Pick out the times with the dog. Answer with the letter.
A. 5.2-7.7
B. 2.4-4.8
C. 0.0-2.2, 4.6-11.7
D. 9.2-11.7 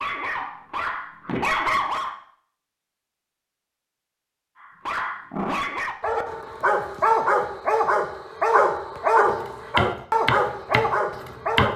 C.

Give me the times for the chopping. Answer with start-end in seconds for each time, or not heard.
9.2-11.7.